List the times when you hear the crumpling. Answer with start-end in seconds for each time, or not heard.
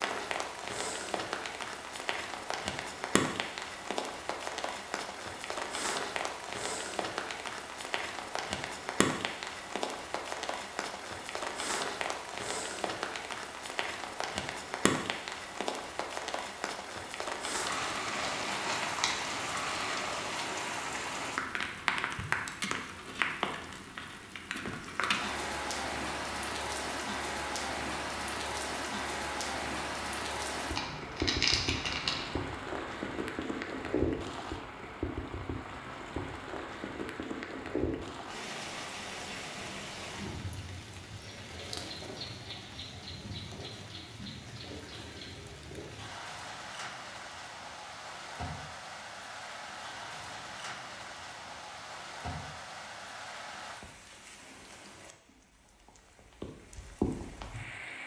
17.7-20.5, 30.8-32.2.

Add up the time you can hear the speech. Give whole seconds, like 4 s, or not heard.
not heard.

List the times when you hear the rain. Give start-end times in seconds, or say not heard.
0.0-58.0.